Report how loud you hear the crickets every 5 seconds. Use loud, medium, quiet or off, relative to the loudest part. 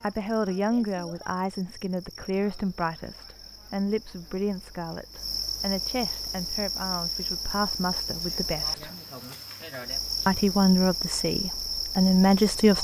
quiet, loud, loud.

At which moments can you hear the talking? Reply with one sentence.
The talking can be heard from 0.0 to 8.9 s and from 10.2 to 12.7 s.